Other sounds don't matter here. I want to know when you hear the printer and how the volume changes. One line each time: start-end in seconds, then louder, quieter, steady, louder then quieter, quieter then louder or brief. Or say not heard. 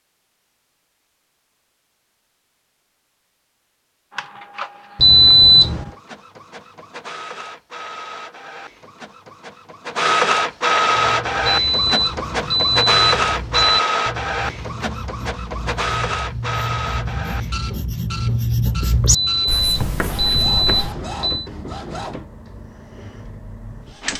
4.1-24.1 louder then quieter.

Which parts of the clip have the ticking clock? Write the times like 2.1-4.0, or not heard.
not heard.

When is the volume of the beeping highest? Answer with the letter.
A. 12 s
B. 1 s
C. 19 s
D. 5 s
D.